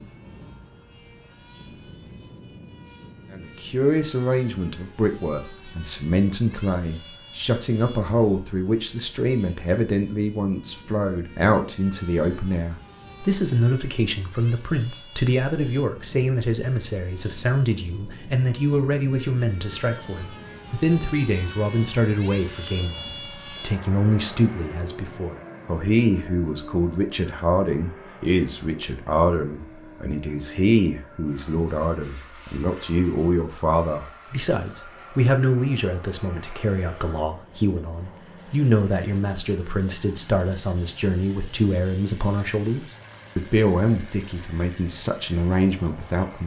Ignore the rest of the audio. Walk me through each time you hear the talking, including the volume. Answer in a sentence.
The talking can be heard from 3.3 to 46.4 s, at a steady volume.